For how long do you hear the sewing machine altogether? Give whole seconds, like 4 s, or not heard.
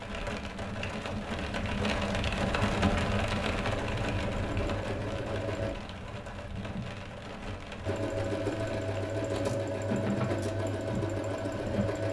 6 s.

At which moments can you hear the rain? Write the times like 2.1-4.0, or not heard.
0.0-12.0.